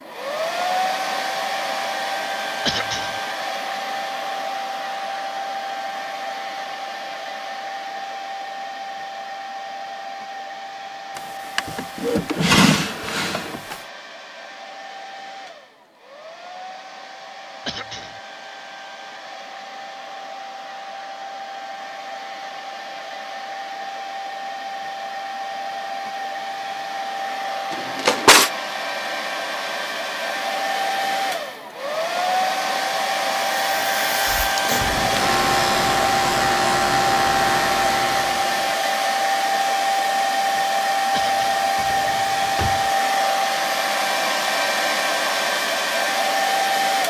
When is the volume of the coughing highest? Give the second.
3 s.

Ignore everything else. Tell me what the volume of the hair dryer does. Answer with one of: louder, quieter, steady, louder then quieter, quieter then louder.
quieter then louder.